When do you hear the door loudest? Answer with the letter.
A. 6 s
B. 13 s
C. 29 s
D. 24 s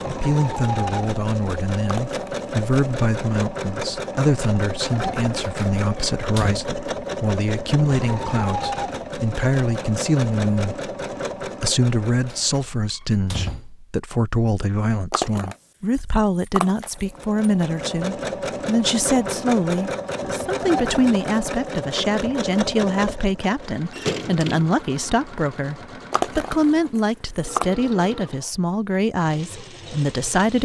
D.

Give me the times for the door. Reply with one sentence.
The door can be heard from 5.3 to 6.6 s, from 12.3 to 13.8 s and from 23.9 to 24.8 s.